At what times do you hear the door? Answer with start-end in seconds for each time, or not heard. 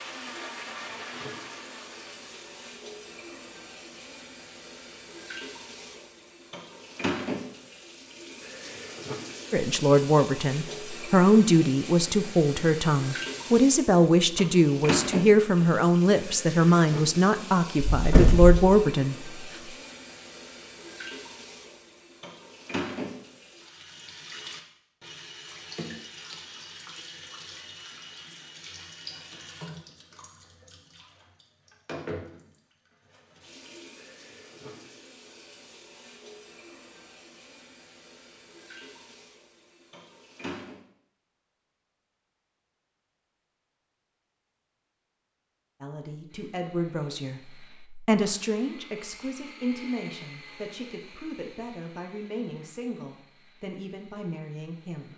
17.9-18.6.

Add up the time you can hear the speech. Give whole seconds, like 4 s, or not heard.
19 s.